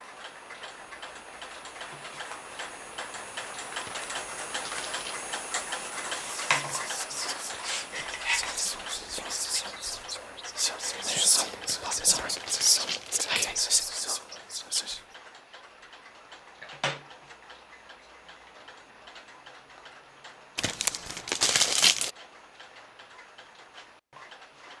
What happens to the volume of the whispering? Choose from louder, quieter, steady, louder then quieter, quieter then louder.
louder.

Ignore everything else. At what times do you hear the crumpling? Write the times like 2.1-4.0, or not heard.
3.8-5.2, 11.6-13.3, 20.6-22.1.